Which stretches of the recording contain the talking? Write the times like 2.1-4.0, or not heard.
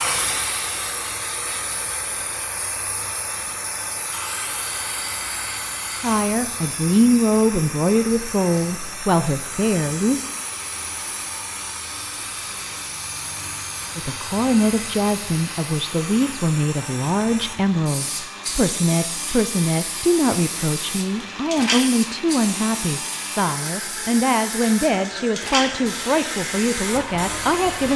6.0-10.2, 13.9-27.9.